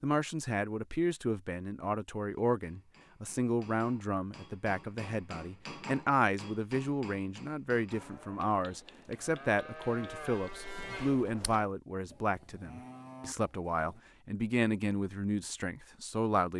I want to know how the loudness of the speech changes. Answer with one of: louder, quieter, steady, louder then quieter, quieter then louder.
steady.